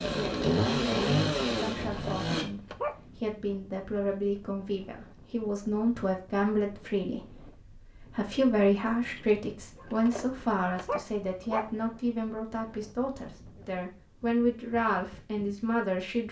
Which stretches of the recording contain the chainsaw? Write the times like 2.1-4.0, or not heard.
0.0-2.5.